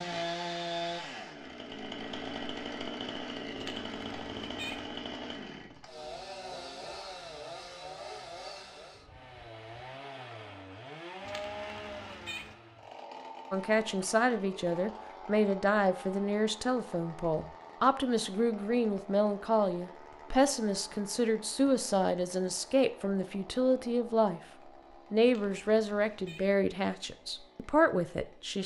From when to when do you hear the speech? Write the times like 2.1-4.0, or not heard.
13.5-24.4, 25.1-28.6.